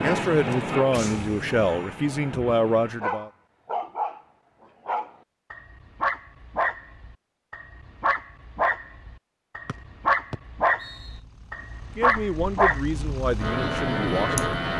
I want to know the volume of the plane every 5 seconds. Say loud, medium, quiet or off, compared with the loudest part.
loud, off, loud.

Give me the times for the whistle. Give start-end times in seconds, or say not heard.
9.7-11.2.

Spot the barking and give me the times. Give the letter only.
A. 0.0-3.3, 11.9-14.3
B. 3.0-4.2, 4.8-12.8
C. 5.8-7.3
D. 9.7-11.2
B.